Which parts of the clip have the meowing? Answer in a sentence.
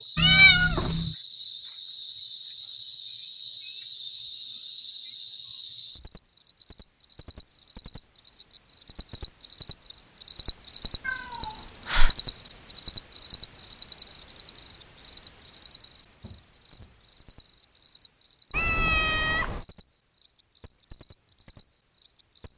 The meowing can be heard from 0.1 to 1.1 s, from 11.1 to 12.1 s and from 18.5 to 19.6 s.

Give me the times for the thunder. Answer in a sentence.
The thunder can't be heard in this clip.